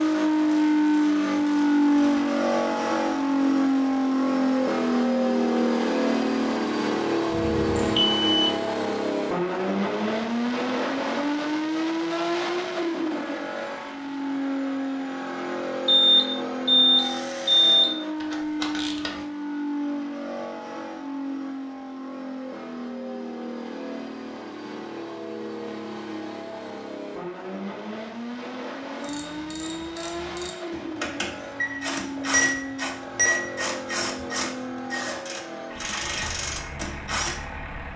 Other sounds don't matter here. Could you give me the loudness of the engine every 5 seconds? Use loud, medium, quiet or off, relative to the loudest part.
loud, loud, medium, medium, quiet, quiet, quiet, quiet.